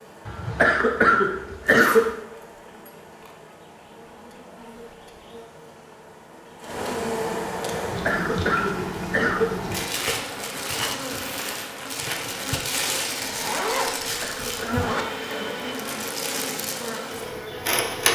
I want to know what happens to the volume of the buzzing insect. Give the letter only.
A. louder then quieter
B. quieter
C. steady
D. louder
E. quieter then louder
D.